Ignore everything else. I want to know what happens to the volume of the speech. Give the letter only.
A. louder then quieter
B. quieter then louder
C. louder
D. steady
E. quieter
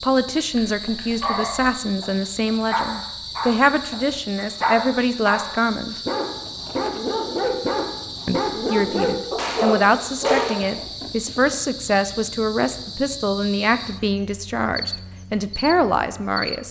D.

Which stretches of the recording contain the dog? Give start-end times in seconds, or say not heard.
0.5-10.8.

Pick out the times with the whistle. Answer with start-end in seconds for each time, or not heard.
not heard.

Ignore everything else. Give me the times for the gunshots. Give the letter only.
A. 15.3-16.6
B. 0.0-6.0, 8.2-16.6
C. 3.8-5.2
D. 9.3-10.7
D.